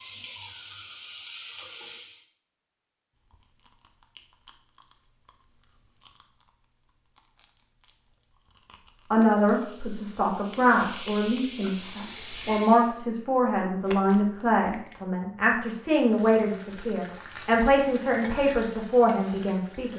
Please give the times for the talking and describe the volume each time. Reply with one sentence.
The talking can be heard from 9.1 to 19.9 s, at a steady volume.